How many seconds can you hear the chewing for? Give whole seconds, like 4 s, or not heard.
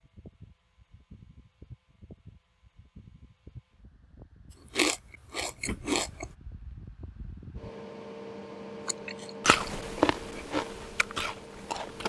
5 s.